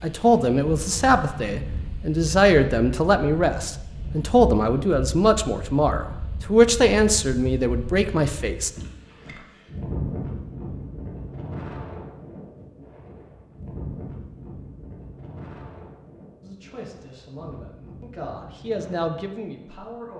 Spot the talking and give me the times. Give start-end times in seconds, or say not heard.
0.0-8.7, 16.4-20.1.